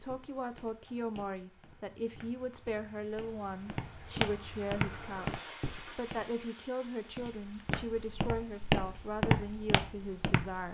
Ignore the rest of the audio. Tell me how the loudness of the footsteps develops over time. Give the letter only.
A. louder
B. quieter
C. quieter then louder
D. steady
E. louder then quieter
A.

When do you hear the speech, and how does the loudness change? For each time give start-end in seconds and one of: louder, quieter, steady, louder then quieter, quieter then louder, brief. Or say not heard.
0.0-10.6 steady.